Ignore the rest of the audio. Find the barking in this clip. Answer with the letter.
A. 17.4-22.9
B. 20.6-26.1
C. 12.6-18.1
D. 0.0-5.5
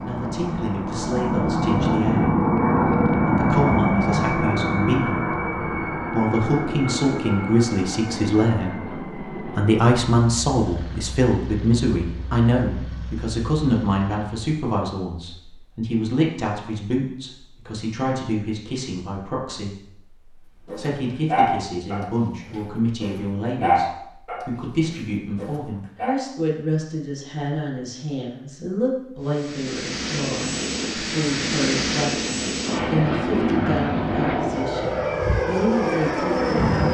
B.